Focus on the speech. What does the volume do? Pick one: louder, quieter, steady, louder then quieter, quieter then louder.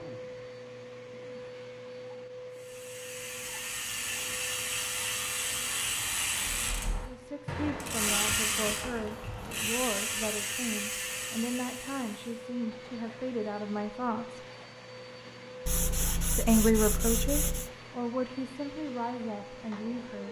louder then quieter.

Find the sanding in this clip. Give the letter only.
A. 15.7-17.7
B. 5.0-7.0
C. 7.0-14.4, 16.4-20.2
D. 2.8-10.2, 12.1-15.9
A.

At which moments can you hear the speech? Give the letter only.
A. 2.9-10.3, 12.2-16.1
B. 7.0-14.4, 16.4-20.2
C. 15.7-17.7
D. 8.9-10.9
B.